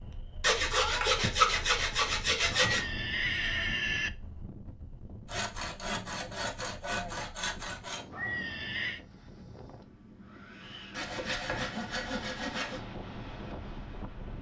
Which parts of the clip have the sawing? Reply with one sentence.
You can hear the sawing from 0.4 to 2.9 s, from 5.2 to 8.1 s and from 10.9 to 12.8 s.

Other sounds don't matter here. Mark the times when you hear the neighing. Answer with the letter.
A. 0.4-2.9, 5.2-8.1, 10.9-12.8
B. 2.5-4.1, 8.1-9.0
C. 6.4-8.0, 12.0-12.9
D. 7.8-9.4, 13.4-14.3
B.